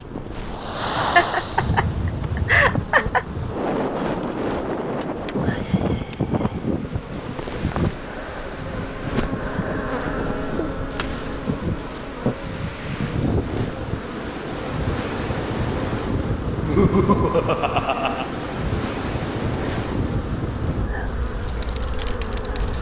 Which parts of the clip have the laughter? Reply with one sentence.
The laughter can be heard from 1.1 to 3.2 s and from 16.6 to 18.3 s.